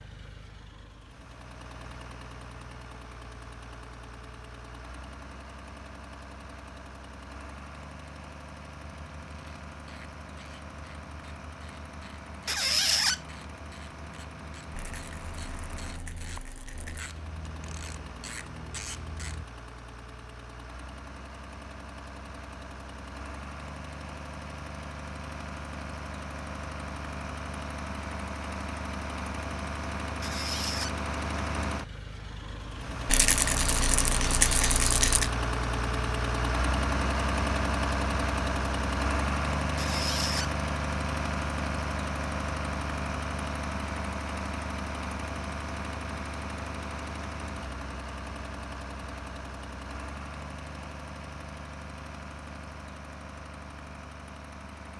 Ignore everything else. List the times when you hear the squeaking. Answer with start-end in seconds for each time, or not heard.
12.4-13.2, 30.2-30.9, 39.8-40.5.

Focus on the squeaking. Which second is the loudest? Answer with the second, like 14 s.
13 s.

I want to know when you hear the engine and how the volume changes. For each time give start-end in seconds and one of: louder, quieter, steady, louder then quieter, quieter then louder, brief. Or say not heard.
0.0-54.9 louder then quieter.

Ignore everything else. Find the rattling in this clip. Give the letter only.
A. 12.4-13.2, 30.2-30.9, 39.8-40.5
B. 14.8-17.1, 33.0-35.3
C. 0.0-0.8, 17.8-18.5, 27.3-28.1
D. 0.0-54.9
B.